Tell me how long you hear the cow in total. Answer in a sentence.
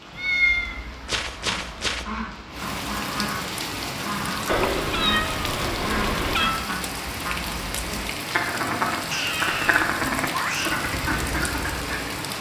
You can't hear the cow here.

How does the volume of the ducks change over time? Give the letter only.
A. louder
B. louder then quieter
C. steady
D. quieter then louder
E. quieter
A.